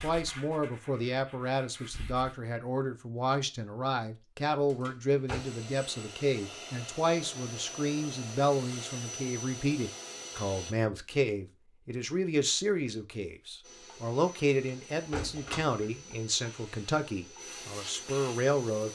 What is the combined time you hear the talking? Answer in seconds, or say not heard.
19 s.